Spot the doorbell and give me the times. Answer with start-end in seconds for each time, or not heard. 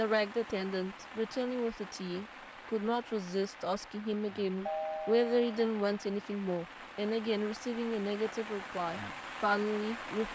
4.7-5.7.